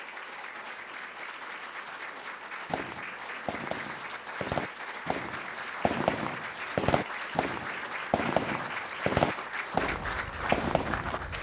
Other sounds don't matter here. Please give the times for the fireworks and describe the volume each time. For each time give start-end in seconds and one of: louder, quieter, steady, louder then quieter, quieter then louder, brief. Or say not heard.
2.6-11.2 louder.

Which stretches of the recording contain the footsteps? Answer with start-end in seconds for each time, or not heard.
9.8-11.3.